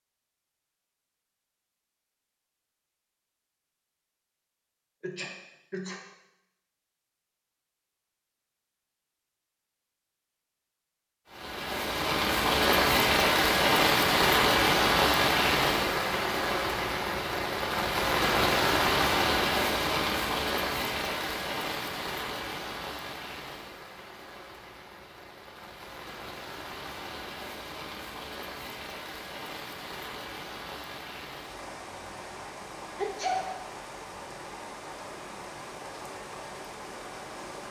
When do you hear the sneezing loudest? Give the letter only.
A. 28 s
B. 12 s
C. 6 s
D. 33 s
D.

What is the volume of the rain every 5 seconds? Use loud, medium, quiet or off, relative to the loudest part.
off, off, loud, loud, medium, quiet, quiet, quiet.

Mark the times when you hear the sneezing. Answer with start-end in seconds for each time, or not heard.
5.0-6.0, 33.0-33.5.